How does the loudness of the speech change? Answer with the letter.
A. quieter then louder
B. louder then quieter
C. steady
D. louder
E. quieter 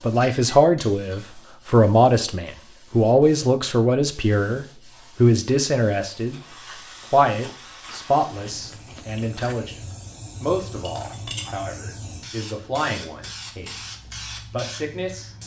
E.